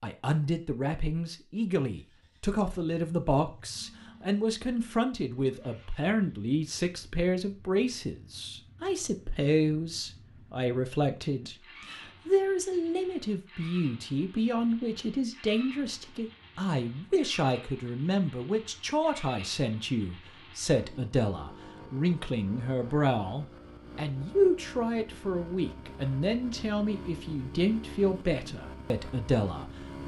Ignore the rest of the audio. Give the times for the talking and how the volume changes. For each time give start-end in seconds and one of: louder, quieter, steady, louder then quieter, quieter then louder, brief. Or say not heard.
0.0-30.0 steady.